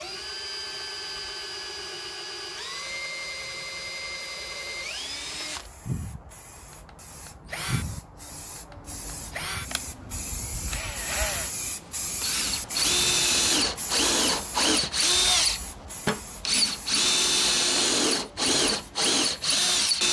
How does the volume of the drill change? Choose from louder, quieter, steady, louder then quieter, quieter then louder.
louder.